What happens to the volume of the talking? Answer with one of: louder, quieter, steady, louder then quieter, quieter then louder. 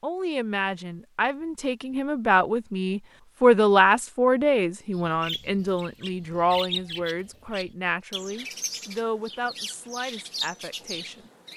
louder then quieter.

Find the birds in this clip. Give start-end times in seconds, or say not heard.
4.9-11.5.